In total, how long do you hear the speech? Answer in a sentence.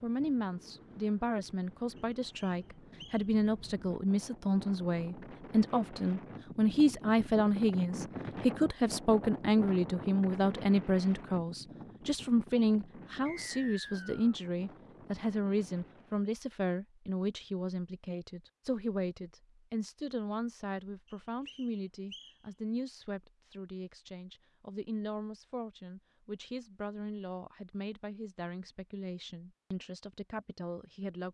The speech can be heard for 31 seconds in total.